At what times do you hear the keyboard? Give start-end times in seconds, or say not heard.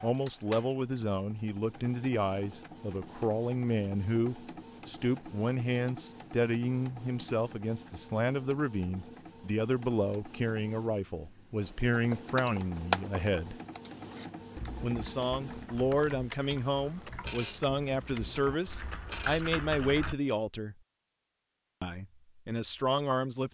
11.6-20.1.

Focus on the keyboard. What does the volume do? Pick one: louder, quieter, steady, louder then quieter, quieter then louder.
quieter then louder.